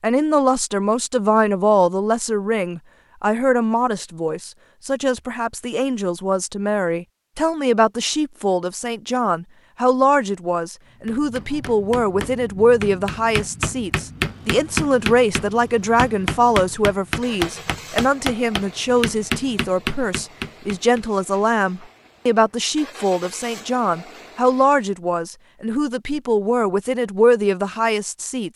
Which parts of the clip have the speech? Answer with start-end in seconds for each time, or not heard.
0.0-28.5.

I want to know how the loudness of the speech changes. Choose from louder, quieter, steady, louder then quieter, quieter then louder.
steady.